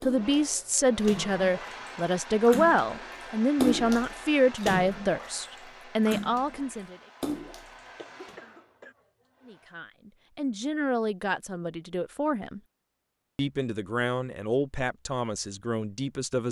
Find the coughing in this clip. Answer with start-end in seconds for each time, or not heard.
8.0-8.9.